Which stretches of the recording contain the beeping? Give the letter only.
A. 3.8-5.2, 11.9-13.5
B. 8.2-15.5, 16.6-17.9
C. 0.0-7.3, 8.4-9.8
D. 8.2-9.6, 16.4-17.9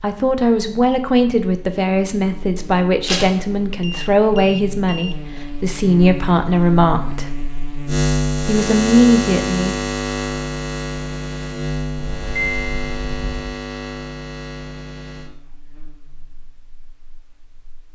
A.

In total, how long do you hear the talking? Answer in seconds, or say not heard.
9 s.